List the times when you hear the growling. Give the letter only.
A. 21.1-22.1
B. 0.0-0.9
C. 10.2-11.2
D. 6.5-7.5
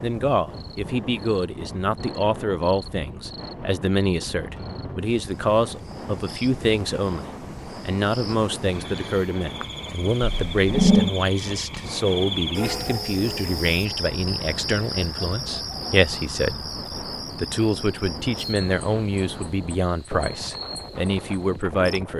C.